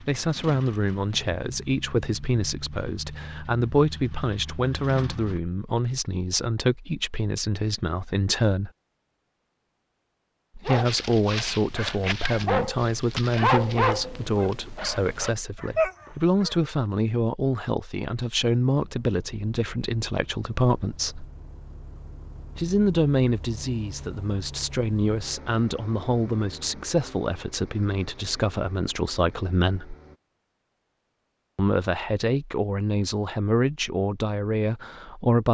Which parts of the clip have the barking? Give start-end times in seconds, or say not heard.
10.7-16.6.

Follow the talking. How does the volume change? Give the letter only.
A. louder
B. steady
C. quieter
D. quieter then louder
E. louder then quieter
B.